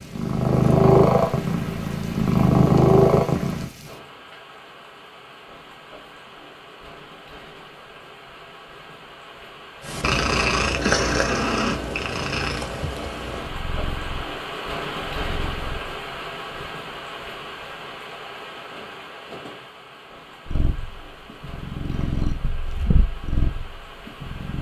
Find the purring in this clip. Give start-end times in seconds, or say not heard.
0.1-3.7, 9.8-16.7, 20.4-24.5.